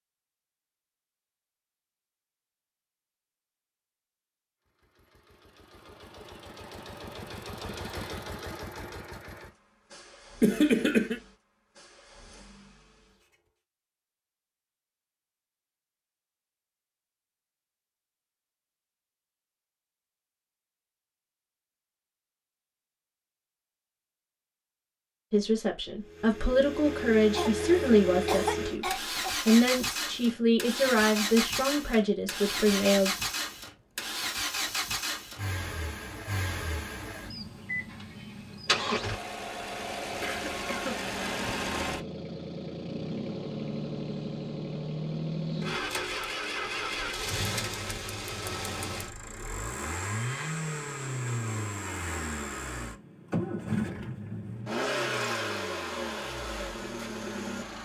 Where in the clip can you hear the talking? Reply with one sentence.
You can hear the talking from 25.3 to 33.1 s.